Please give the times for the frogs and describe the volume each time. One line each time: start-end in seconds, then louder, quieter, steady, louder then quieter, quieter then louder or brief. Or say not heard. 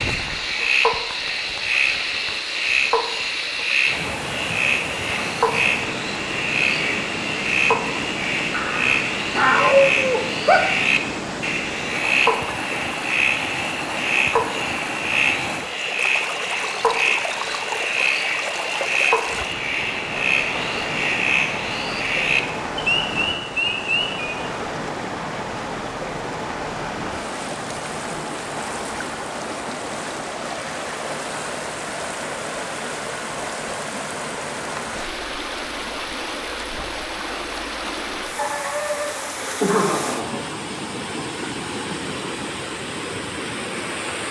0.0-24.5 steady.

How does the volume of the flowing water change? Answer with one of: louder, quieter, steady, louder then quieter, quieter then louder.
steady.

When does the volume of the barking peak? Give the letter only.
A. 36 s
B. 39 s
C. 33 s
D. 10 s
D.